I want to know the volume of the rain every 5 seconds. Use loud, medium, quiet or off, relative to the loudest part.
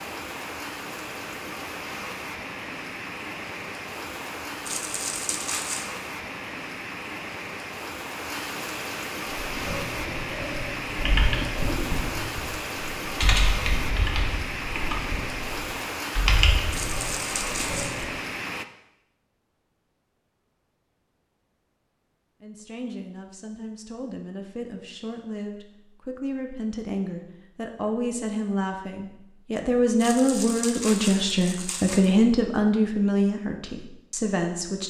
loud, loud, loud, loud, off, off, off.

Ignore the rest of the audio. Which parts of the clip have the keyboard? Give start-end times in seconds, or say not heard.
9.3-18.1.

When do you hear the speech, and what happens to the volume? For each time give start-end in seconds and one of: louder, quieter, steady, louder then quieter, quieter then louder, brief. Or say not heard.
22.4-34.8 louder.